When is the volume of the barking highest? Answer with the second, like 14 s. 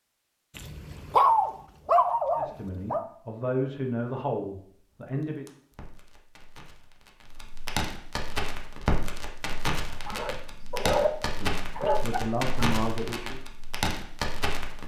1 s.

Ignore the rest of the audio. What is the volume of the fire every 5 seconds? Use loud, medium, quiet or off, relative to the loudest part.
off, loud, loud.